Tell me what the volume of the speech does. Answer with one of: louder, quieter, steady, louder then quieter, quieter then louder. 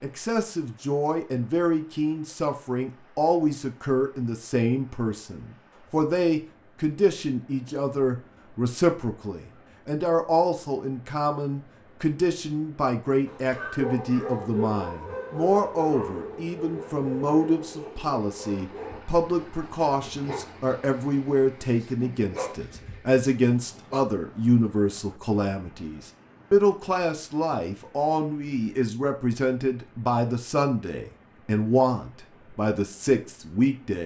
steady.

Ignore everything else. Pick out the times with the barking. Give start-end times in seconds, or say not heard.
13.2-24.0.